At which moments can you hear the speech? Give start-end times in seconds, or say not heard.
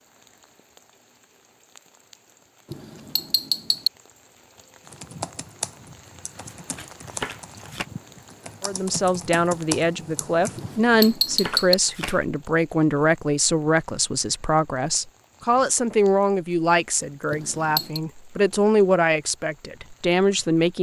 8.6-20.7.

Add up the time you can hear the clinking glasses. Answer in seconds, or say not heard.
3 s.